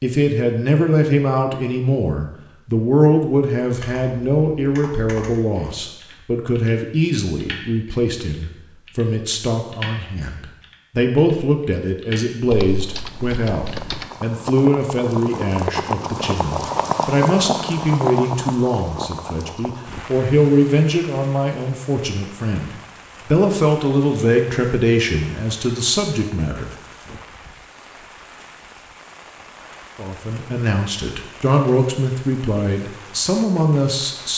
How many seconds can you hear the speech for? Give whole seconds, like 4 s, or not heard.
31 s.